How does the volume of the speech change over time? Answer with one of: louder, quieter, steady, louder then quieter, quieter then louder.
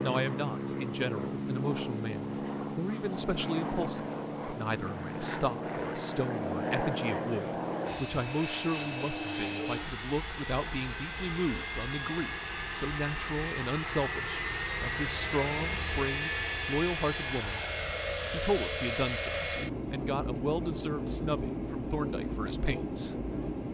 steady.